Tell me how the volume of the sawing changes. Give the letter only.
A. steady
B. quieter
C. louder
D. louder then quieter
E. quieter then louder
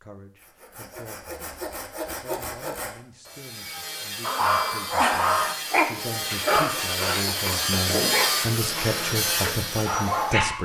C.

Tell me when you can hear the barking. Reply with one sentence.
You can hear the barking from 4.2 to 10.6 s.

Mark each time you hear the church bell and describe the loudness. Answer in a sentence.
The church bell can't be heard in this clip.